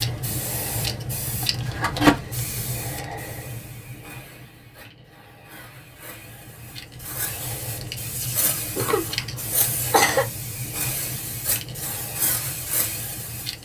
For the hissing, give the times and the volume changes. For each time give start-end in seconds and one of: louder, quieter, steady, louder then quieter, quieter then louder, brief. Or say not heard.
0.0-13.6 quieter then louder.